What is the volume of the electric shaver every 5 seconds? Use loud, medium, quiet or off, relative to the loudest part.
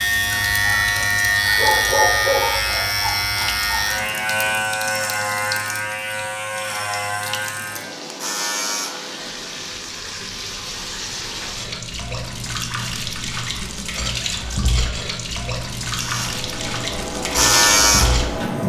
loud, medium, off, loud.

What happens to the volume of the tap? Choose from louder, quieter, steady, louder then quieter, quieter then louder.
louder.